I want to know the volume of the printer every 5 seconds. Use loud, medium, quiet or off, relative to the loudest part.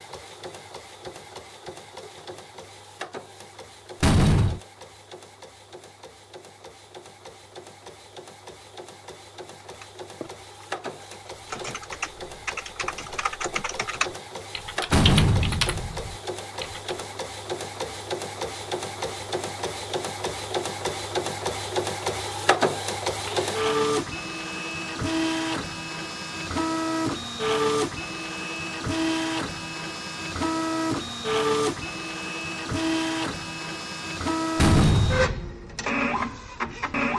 quiet, quiet, medium, medium, loud, loud, loud, loud.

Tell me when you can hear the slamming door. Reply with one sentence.
You can hear the slamming door from 4.0 to 4.6 s, from 14.9 to 16.1 s and from 34.5 to 35.5 s.